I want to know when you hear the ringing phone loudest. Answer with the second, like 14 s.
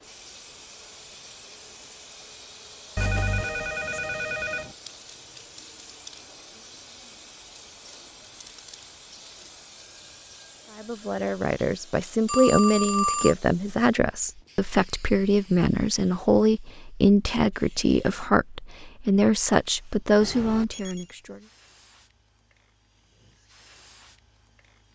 13 s.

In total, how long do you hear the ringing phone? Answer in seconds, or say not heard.
4 s.